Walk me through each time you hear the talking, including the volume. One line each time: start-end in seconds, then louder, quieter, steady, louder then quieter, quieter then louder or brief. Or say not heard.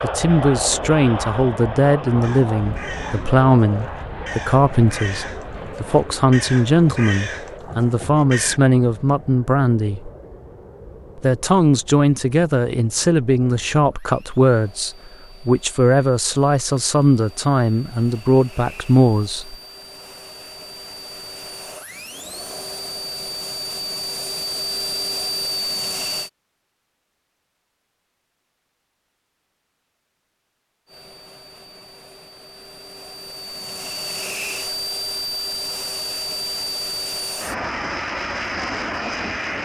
0.0-10.1 steady
11.2-19.6 steady.